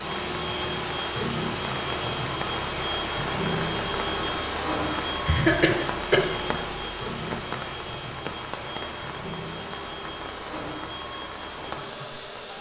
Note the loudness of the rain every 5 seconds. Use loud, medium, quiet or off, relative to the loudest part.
loud, loud, medium.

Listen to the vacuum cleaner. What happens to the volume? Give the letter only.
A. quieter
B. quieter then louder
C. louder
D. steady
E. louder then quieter
A.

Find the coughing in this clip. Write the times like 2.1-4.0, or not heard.
5.2-6.2.